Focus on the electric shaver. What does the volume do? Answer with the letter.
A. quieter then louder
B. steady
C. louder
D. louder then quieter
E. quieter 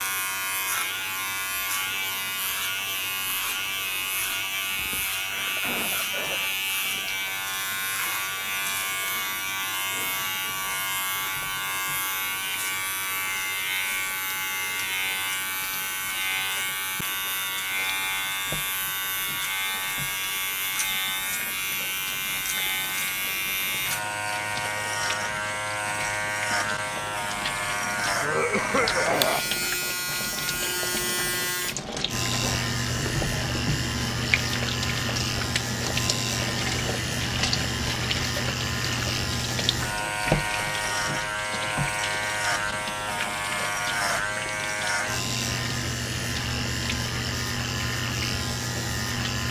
B.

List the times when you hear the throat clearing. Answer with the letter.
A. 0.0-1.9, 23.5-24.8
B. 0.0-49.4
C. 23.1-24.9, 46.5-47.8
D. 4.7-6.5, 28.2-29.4
D.